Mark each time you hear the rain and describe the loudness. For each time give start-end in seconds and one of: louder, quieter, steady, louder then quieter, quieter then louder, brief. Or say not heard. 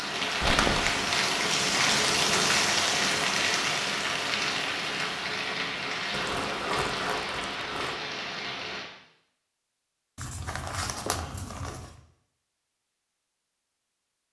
0.0-8.9 quieter.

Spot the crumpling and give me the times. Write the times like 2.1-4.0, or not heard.
0.4-1.1, 6.1-8.0, 10.2-11.9.